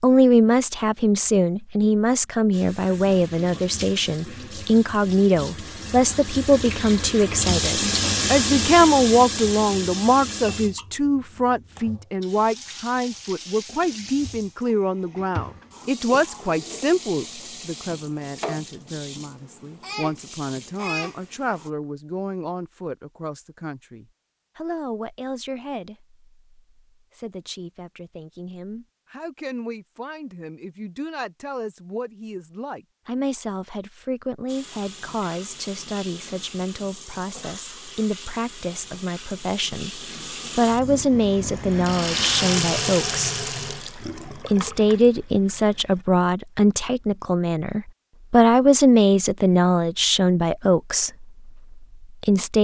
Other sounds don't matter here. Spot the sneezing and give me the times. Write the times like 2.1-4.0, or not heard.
not heard.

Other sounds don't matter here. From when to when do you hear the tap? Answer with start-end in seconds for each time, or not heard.
2.5-21.7, 34.5-46.0.